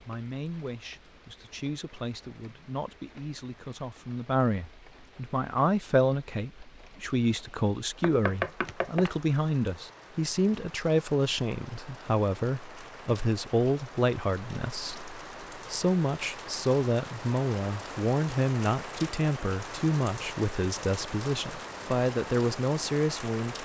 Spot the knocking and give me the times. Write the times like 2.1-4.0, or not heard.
8.0-9.2.